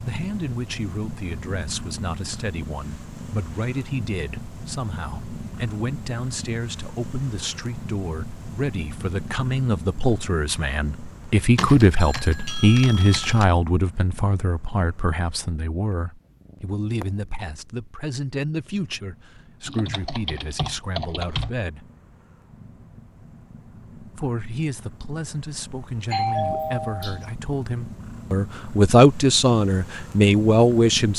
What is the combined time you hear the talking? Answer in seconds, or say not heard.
29 s.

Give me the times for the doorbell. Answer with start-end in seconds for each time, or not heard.
12.0-13.3, 26.1-27.3.